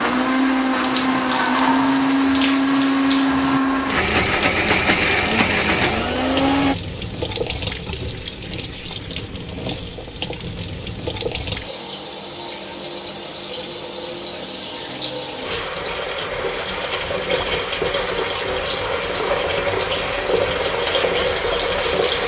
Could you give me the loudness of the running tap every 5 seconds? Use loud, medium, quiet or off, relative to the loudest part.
medium, medium, medium, loud, loud.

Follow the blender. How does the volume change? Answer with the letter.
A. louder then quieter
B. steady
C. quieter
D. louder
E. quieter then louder
B.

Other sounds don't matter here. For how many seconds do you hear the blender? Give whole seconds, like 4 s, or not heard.
7 s.